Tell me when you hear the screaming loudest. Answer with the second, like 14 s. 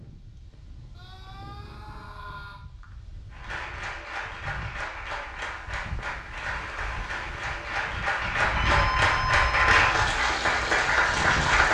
9 s.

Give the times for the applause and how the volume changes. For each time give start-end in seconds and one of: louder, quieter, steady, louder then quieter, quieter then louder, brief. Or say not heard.
3.3-11.6 louder.